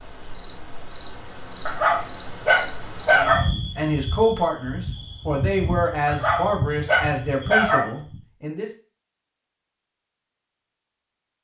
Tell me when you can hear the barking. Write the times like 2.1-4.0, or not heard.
1.6-3.5, 6.0-7.9.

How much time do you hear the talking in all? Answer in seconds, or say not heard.
6 s.